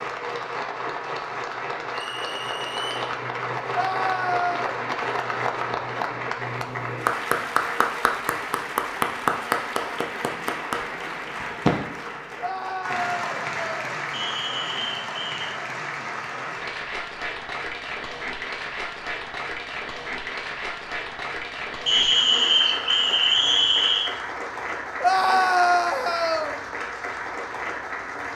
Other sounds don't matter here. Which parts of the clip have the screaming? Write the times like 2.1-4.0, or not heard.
3.7-4.8, 12.3-13.7, 25.0-26.6.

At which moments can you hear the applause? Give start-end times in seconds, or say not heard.
0.0-28.3.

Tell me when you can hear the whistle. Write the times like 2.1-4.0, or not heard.
1.9-3.0, 14.1-15.4, 21.9-24.1.